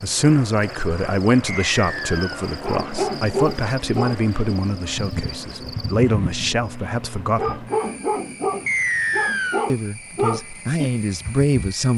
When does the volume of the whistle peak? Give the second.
9 s.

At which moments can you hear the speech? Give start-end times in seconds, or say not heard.
0.0-7.7, 9.7-11.9.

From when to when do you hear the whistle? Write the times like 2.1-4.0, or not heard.
1.4-2.5, 8.7-9.7.